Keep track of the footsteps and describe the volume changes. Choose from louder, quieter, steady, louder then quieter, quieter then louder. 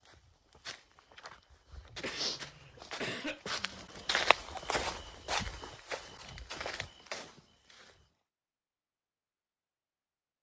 louder then quieter.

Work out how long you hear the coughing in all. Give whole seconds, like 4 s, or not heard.
2 s.